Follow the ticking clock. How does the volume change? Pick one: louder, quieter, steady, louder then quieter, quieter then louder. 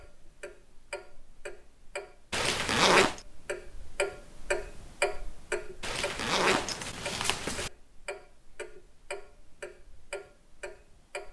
louder then quieter.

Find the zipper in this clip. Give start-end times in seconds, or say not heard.
2.3-3.2, 5.8-7.7.